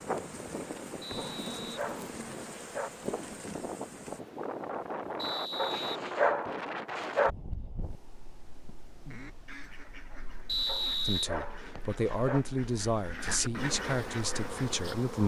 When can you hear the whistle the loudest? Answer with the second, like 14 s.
11 s.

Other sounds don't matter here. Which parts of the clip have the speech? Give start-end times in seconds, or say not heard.
11.1-15.2.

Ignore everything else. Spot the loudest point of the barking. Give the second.
6 s.